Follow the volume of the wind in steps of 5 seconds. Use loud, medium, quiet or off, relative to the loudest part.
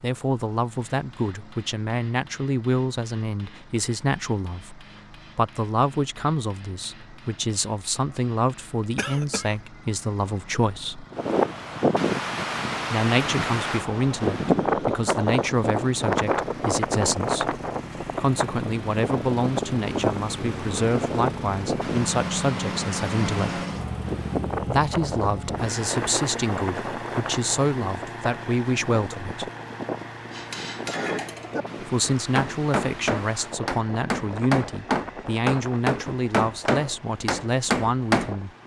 off, off, loud, loud, medium, medium, quiet, quiet.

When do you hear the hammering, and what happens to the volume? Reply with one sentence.
The hammering can be heard from 0.8 to 8.9 s, at a steady volume; and from 30.3 to 38.4 s, getting louder.